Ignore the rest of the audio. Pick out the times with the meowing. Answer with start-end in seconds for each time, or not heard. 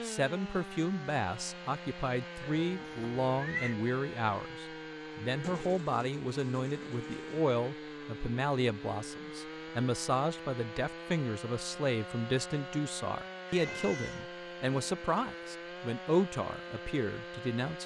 2.4-3.8, 13.4-15.1.